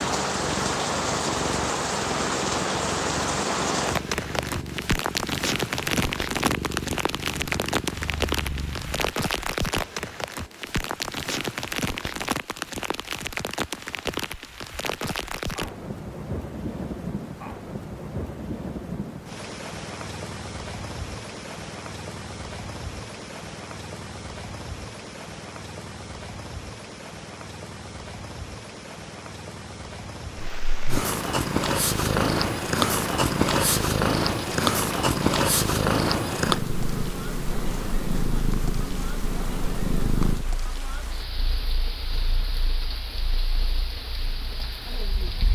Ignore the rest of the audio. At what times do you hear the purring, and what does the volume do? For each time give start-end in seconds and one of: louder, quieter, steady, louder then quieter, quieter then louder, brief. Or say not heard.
0.1-9.2 steady
30.4-45.4 quieter.